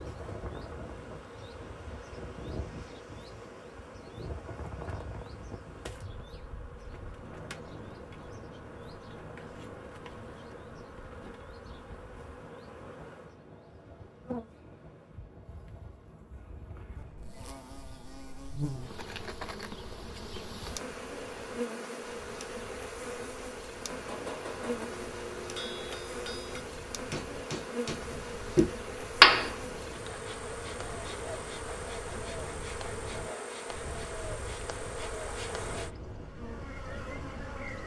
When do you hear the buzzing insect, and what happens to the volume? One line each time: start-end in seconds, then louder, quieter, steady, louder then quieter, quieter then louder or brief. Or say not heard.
0.0-37.8 louder.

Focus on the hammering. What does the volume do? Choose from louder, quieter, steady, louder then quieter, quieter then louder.
louder.